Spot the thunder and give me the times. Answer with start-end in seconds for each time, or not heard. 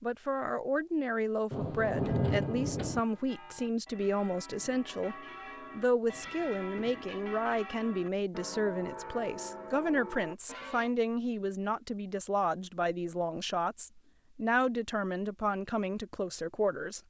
1.5-3.0.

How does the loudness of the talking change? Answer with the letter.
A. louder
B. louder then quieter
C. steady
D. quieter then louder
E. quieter
C.